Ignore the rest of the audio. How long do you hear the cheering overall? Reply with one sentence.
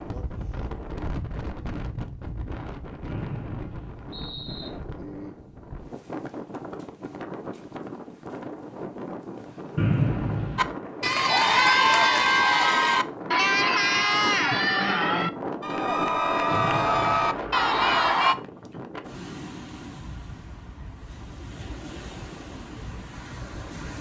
You can hear the cheering for 8 seconds altogether.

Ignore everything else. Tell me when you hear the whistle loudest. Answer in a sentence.
The volume of the whistle peaks at 10 seconds.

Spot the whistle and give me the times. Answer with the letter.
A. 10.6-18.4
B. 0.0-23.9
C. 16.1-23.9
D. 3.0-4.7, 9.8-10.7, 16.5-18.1
D.